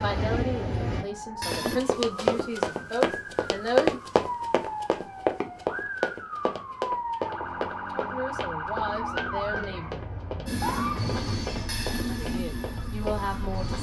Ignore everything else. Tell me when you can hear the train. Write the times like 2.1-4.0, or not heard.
0.0-1.8, 10.4-13.7.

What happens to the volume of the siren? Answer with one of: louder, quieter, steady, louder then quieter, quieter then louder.
louder then quieter.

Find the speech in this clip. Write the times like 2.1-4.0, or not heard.
0.0-4.0, 8.0-10.0, 12.2-13.7.